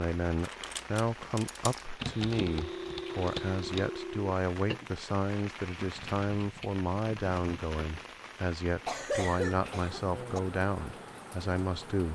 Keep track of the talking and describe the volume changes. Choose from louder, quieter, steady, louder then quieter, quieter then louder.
steady.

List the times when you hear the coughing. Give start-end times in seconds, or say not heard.
8.8-10.4.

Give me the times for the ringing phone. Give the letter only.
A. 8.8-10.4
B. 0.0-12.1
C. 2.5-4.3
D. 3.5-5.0
C.